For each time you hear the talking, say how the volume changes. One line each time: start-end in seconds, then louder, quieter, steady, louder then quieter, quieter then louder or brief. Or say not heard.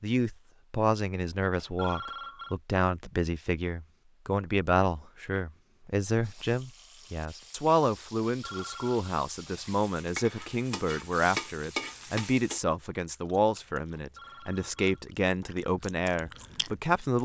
0.0-17.1 steady.